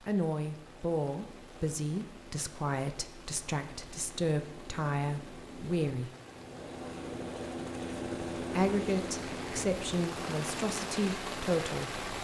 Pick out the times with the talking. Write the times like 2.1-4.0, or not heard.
0.1-6.1, 8.4-12.2.